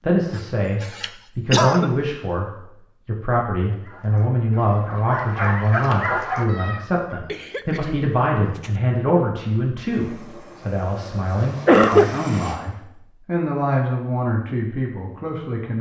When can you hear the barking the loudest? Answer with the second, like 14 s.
6 s.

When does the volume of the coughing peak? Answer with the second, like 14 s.
12 s.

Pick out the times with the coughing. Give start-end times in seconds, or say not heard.
0.3-1.9, 7.1-8.8, 11.7-12.1.